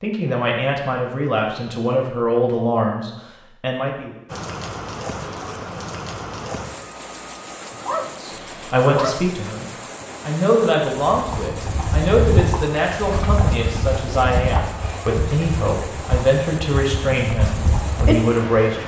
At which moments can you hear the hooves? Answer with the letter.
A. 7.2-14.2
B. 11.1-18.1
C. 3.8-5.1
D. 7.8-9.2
B.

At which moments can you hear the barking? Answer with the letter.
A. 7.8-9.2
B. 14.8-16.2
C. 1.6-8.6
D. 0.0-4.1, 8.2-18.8
A.